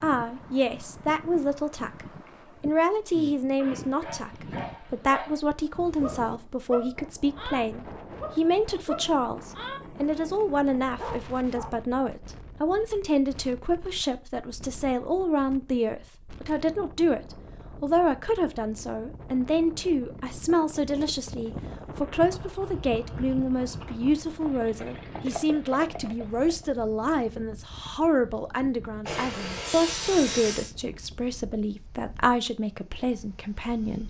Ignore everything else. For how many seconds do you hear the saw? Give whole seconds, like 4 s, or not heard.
2 s.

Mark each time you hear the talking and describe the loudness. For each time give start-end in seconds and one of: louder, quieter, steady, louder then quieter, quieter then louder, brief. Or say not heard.
0.0-34.0 steady.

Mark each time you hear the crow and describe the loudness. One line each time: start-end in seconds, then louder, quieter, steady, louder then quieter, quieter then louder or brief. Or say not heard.
not heard.